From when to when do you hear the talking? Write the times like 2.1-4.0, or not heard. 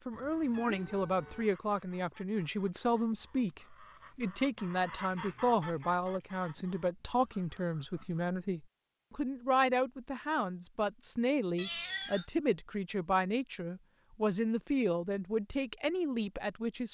0.1-16.8.